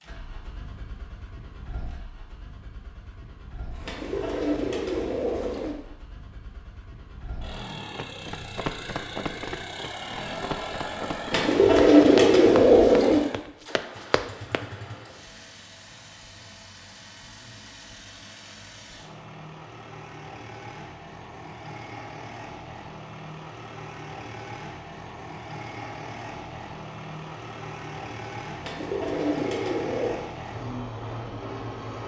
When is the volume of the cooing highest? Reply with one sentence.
The volume of the cooing peaks at 12 seconds.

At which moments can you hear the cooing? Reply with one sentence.
The cooing can be heard from 3.9 to 5.8 s, from 11.3 to 13.2 s and from 28.6 to 30.2 s.